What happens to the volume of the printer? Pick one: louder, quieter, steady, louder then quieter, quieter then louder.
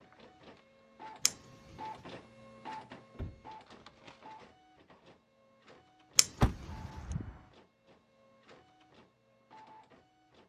quieter.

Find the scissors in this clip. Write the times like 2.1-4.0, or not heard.
1.2-1.8, 6.2-6.7.